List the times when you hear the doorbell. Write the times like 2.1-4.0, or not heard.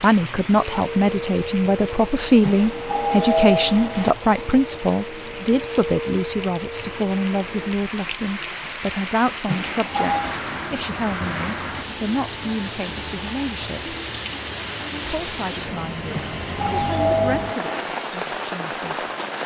2.4-4.2, 9.4-10.3, 16.1-17.9.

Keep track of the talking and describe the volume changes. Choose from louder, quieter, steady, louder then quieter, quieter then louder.
quieter.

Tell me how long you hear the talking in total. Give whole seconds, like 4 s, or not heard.
18 s.